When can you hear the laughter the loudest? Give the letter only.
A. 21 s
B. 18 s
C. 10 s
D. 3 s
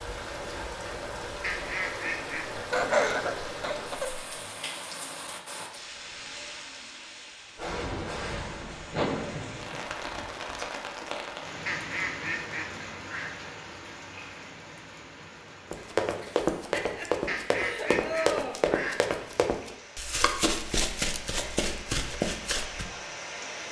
D.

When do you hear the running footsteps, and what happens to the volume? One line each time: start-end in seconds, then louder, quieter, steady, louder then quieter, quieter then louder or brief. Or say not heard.
15.7-22.9 steady.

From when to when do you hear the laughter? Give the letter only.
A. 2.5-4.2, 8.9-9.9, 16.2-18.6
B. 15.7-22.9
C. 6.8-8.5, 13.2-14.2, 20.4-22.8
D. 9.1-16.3
A.